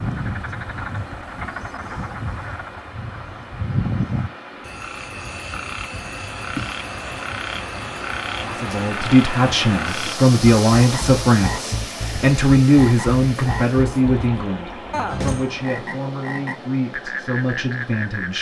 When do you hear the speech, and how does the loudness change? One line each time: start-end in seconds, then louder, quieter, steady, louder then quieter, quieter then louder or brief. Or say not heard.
8.4-18.3 quieter.